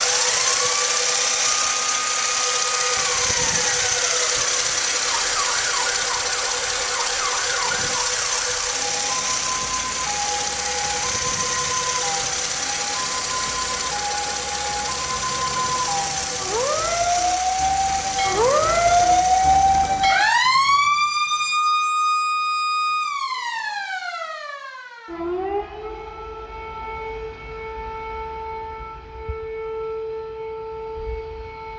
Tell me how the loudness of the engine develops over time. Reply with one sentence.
The loudness of the engine goes down.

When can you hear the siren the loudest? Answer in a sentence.
The volume of the siren peaks at 19 seconds.